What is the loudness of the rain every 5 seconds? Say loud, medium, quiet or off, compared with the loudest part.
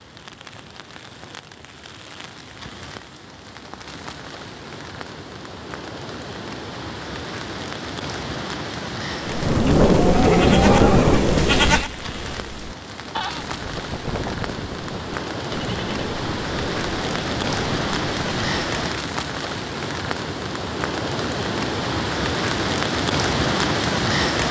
quiet, medium, medium, loud, loud.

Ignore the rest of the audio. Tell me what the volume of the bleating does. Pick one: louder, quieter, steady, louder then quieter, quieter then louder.
quieter.